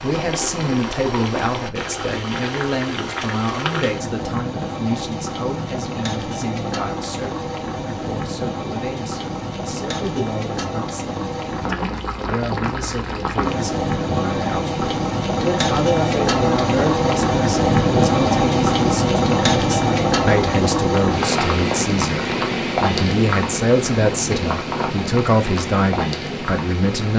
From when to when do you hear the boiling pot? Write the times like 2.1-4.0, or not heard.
0.0-27.1.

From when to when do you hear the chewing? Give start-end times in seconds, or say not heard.
not heard.